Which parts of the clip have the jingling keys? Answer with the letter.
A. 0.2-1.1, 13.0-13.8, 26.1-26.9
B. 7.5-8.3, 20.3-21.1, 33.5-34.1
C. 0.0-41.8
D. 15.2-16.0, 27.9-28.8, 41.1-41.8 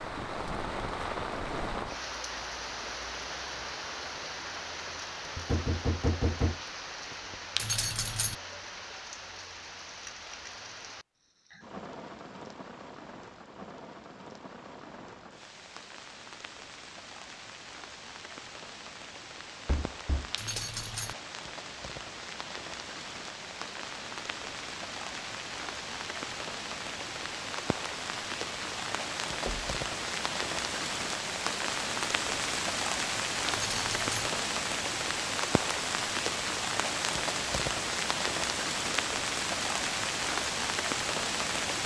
B.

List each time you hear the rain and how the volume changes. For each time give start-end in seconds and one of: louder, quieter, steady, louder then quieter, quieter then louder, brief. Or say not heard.
0.0-41.8 quieter then louder.